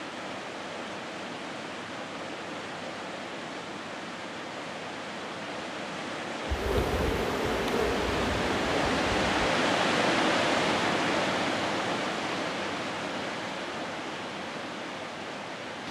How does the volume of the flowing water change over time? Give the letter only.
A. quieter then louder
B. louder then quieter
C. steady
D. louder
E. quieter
B.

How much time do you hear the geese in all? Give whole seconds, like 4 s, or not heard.
not heard.